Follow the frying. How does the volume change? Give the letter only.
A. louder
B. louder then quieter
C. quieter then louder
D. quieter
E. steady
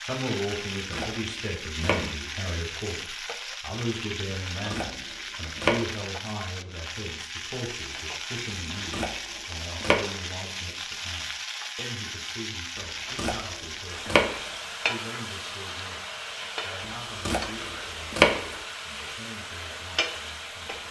E.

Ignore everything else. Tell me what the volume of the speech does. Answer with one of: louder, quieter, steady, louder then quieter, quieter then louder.
quieter.